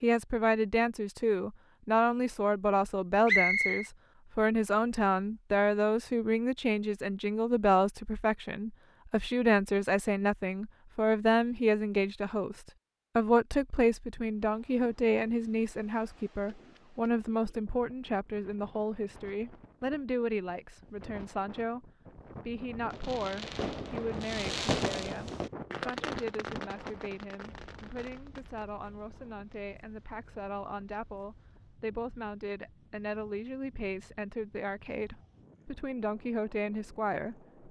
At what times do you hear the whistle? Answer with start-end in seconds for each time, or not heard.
3.2-3.9.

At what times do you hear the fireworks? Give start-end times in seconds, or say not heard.
22.7-28.9.